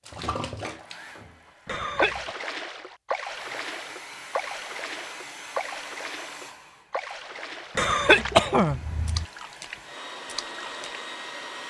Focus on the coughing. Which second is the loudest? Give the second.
8 s.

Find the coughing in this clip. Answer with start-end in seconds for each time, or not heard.
1.6-2.3, 7.8-9.2.